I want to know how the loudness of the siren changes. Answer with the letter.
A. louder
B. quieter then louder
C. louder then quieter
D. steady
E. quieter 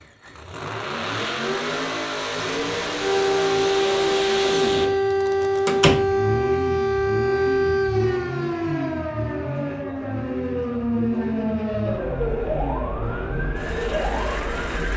E.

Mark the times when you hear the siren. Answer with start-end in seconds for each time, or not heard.
3.0-14.9.